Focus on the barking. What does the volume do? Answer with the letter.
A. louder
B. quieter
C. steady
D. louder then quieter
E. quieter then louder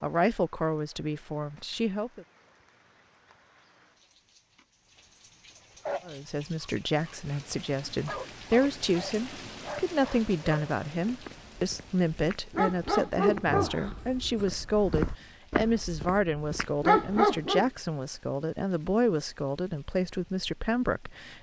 A.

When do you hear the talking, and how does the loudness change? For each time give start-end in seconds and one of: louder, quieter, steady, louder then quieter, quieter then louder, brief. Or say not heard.
0.0-2.2 brief
6.0-21.3 steady.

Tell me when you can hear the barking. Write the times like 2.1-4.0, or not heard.
5.8-17.7.